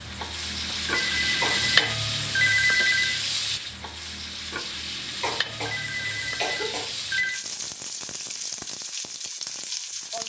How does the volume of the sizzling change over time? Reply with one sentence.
The volume of the sizzling goes down.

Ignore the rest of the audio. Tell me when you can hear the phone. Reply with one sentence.
You can hear the phone from 0.7 to 3.2 s and from 5.5 to 7.4 s.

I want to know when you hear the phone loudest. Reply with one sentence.
The volume of the phone peaks at 3 seconds.